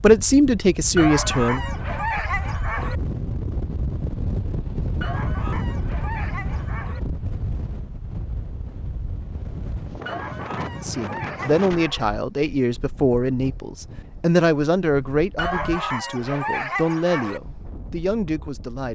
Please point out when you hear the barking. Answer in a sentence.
The barking can be heard from 0.9 to 3.0 s, from 5.0 to 7.0 s, from 10.1 to 12.1 s and from 15.3 to 17.4 s.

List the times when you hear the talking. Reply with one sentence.
You can hear the talking from 0.0 to 1.6 s and from 10.8 to 18.9 s.